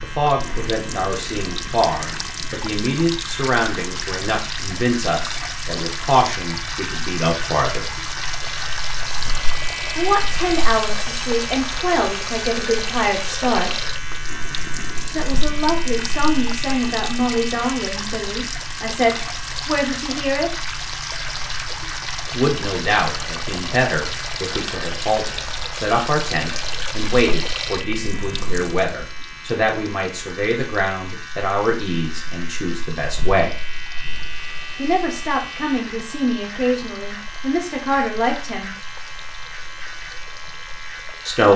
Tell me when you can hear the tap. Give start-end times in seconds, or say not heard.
0.1-41.5.